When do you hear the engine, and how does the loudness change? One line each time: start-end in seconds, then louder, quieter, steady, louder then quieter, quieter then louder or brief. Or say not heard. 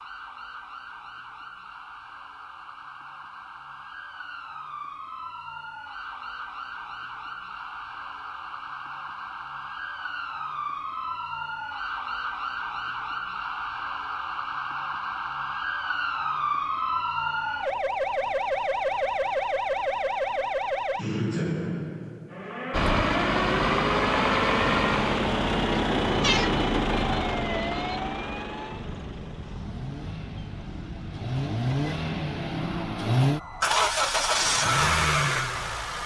22.7-36.0 quieter then louder.